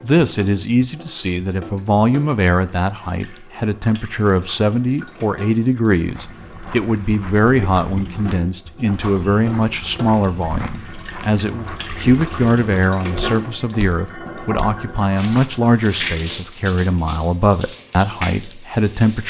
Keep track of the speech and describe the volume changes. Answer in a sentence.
The loudness of the speech stays about the same.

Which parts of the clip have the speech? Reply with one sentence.
The speech can be heard from 0.0 to 19.2 s.